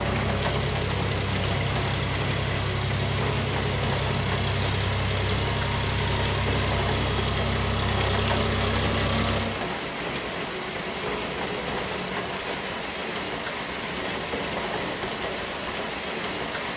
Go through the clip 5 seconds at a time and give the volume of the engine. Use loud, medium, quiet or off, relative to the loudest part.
loud, loud, off, off.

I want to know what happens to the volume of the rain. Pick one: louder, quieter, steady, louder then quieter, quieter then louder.
steady.